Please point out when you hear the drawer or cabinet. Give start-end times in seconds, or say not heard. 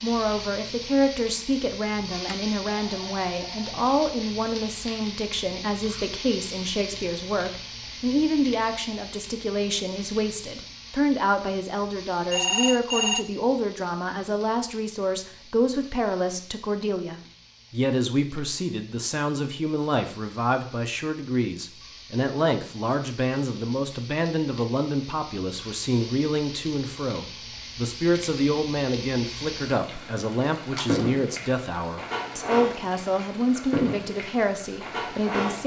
not heard.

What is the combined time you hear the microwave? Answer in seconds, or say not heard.
not heard.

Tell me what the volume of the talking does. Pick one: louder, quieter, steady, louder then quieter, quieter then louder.
steady.